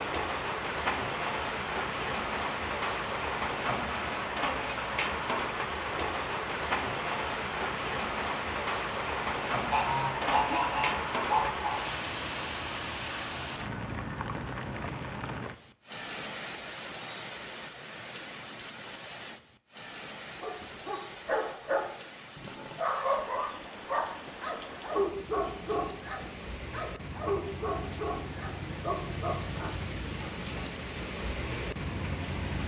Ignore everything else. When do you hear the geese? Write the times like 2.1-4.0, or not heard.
9.7-11.8.